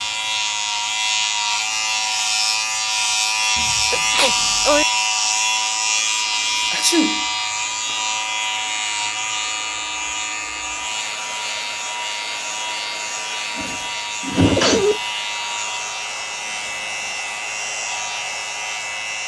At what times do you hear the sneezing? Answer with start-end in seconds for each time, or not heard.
3.5-4.8, 6.7-7.2, 13.6-15.0.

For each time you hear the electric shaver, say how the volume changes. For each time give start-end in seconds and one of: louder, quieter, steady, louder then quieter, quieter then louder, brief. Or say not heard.
0.0-19.2 quieter.